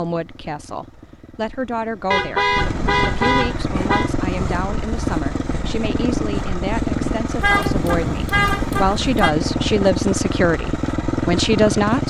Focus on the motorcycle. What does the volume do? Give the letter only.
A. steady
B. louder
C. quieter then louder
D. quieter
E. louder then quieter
B.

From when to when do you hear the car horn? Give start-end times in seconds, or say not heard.
2.1-4.1, 7.4-9.3.